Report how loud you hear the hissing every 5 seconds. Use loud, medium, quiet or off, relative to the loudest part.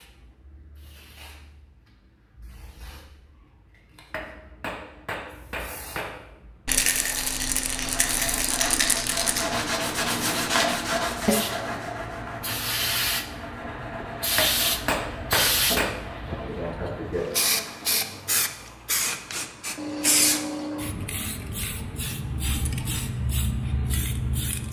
quiet, quiet, loud, loud, loud.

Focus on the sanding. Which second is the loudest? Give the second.
11 s.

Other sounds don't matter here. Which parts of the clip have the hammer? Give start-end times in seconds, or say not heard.
4.1-6.2, 14.3-16.1.